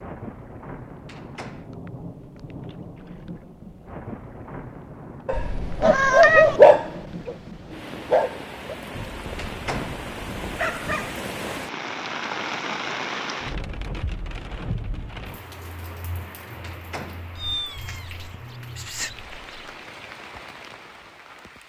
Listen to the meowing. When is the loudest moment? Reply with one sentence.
The loudest moment of the meowing is at 6 seconds.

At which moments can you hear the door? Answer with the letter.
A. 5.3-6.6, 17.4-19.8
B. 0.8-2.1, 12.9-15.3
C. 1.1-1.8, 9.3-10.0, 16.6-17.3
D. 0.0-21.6
C.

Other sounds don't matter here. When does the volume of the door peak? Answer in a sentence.
The loudest moment of the door is at 10 seconds.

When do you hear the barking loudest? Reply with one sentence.
The volume of the barking peaks at 7 seconds.